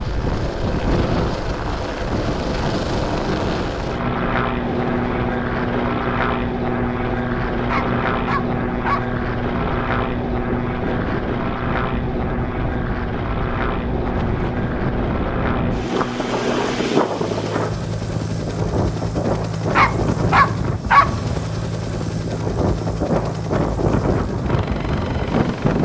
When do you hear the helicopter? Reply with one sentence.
You can hear the helicopter from 0.0 to 25.8 s.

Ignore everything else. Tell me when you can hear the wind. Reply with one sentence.
The wind can be heard from 0.0 to 25.8 s.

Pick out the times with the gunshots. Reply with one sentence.
The gunshots can't be heard in this clip.